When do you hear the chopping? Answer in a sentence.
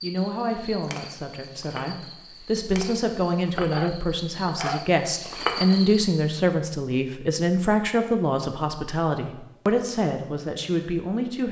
You can hear the chopping from 3.5 to 5.0 s.